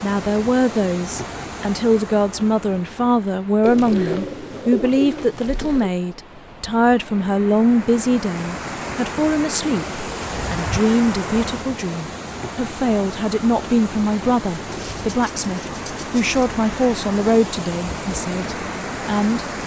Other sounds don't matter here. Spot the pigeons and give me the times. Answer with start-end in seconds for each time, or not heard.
3.6-5.9, 14.7-16.6.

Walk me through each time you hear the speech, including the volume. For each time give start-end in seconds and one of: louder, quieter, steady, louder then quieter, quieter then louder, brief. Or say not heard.
0.0-19.4 steady.